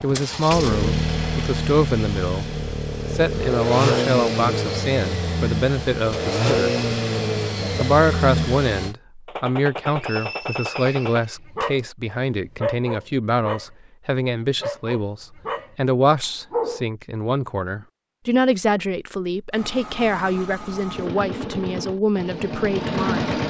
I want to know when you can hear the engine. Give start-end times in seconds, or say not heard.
0.0-8.9, 19.5-23.4.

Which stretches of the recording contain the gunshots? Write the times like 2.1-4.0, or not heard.
9.2-11.2.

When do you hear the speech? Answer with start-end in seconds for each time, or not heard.
0.0-2.5, 3.1-6.8, 7.8-23.3.